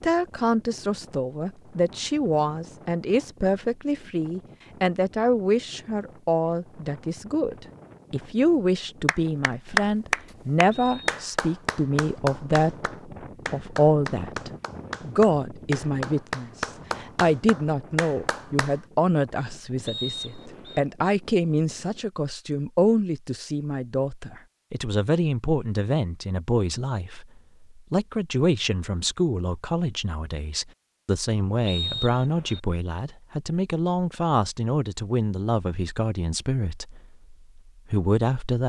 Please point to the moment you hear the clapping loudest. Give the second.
10 s.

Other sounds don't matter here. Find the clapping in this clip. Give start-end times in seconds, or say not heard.
9.1-18.8.